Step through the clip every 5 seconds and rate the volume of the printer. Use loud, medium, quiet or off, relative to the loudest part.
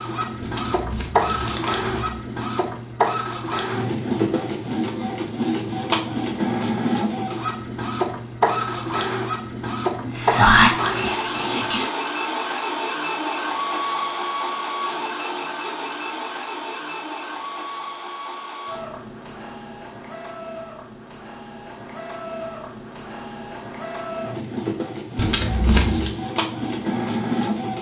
loud, loud, loud, medium, medium, loud.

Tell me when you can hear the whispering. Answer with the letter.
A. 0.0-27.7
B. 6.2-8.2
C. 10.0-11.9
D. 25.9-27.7
C.